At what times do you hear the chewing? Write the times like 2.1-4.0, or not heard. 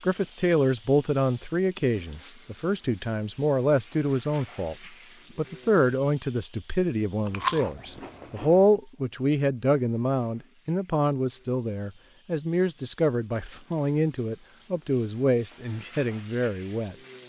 7.2-8.7.